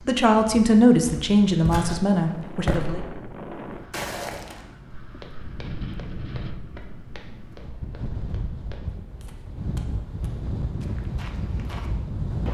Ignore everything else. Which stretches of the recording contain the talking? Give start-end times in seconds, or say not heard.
0.1-3.0.